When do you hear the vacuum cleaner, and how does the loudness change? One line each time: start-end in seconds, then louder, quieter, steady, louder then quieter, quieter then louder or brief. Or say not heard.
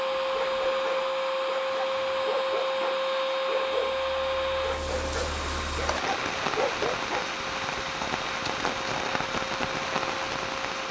0.0-10.8 quieter.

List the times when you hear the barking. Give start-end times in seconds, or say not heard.
0.1-7.8.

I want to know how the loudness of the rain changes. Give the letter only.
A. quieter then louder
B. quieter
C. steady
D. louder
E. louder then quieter
D.